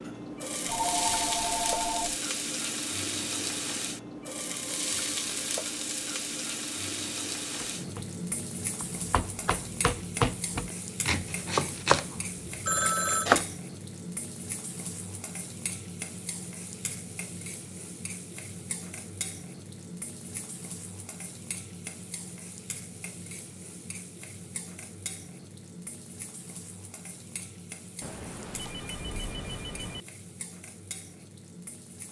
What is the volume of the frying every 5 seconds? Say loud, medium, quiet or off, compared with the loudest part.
loud, loud, medium, medium, medium, quiet, quiet.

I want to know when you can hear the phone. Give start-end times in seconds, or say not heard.
0.7-2.1, 12.7-13.3, 28.0-30.1.